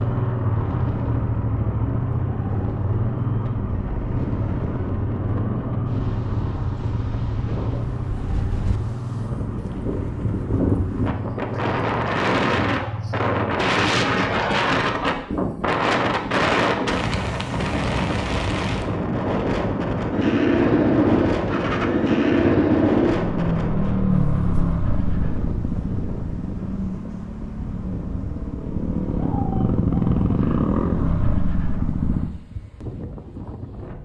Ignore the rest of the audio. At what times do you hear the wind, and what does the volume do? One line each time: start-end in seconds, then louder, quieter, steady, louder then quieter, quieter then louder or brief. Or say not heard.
0.0-34.0 louder then quieter.